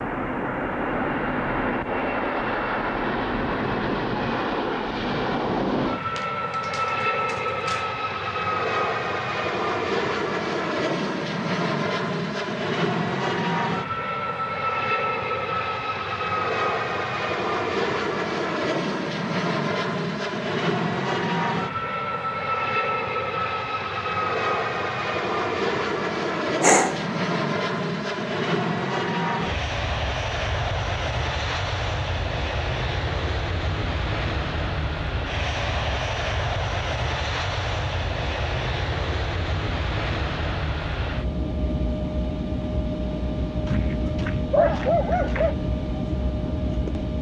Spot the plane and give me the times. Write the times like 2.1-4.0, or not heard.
0.0-47.1.